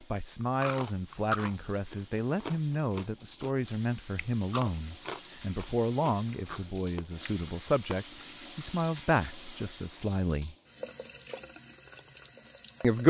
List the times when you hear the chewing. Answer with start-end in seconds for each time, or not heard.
0.4-8.0.